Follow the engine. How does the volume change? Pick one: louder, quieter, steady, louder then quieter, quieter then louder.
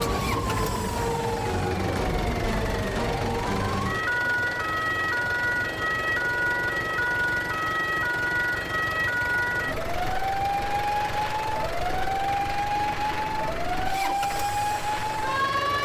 steady.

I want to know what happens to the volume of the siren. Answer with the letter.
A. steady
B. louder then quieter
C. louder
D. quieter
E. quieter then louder
A.